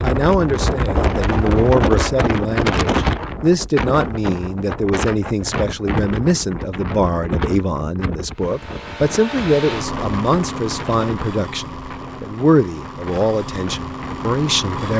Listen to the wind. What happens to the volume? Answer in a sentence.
The volume of the wind goes down.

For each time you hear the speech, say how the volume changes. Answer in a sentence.
You can hear the speech from 0.0 to 14.9 s, at a steady volume.